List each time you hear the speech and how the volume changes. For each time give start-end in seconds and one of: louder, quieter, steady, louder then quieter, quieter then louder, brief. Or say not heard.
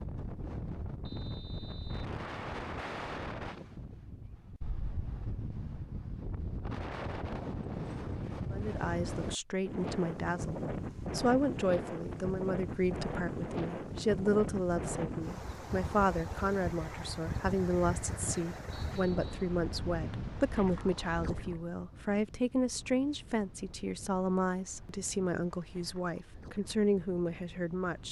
8.5-28.0 steady.